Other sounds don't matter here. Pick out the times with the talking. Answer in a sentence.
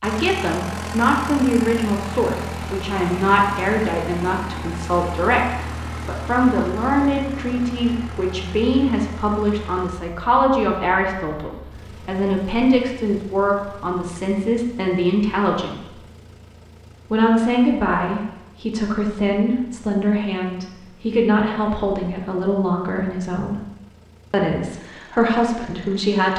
The talking can be heard from 0.0 to 15.8 s, from 17.1 to 23.6 s and from 24.3 to 26.3 s.